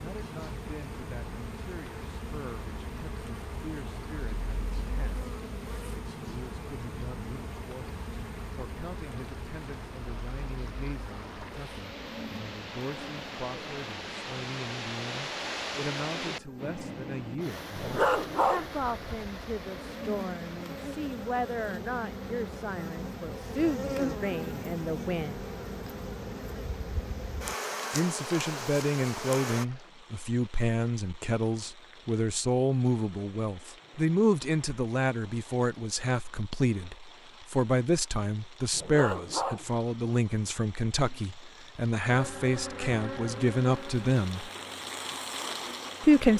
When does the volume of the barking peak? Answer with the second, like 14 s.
18 s.